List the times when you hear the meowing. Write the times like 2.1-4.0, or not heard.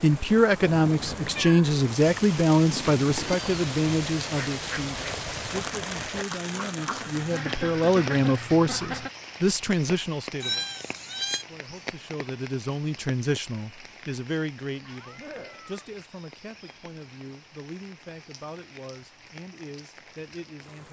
1.4-3.4, 10.4-11.4, 14.8-15.8.